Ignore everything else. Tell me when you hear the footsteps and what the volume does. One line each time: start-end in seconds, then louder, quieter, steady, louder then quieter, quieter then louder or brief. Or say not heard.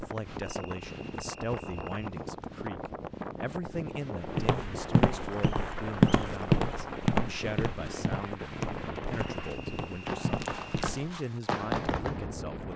4.2-11.0 louder then quieter.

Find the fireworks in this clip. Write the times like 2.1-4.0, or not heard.
4.1-12.2.